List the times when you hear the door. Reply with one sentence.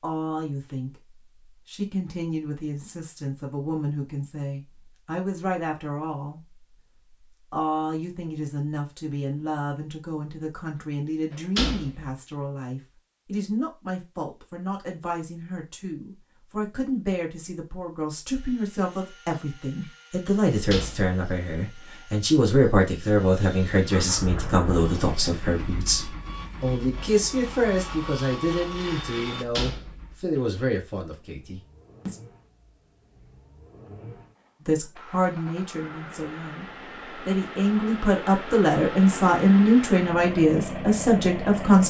The door can be heard from 11.3 to 12.1 s, from 20.7 to 21.1 s and from 29.6 to 30.4 s.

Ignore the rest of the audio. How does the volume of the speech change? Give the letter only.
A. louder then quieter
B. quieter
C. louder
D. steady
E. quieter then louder
C.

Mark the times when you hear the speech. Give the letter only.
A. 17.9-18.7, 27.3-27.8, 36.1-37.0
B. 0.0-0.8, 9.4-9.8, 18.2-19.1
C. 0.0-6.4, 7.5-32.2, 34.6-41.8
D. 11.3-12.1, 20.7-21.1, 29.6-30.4
C.